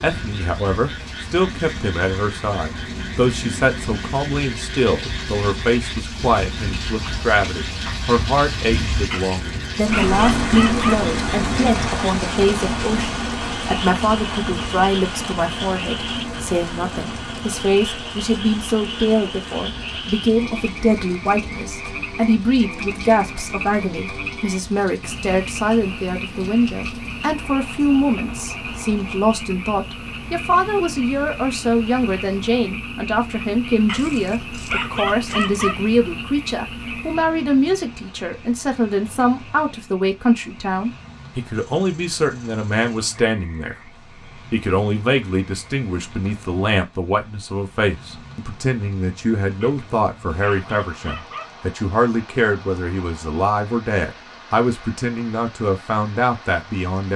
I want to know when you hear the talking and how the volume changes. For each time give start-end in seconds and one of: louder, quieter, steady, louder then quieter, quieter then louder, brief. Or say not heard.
0.0-43.8 steady
44.5-57.1 steady.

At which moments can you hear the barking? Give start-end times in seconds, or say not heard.
9.1-10.9, 33.9-35.8, 49.6-51.5.